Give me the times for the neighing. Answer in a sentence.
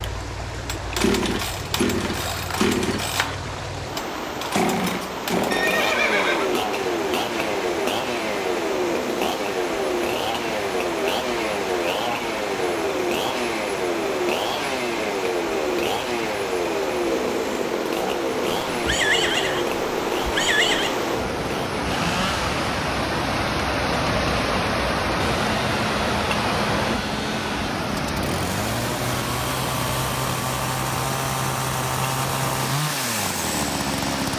The neighing can be heard from 5.5 to 6.5 s and from 18.4 to 21.0 s.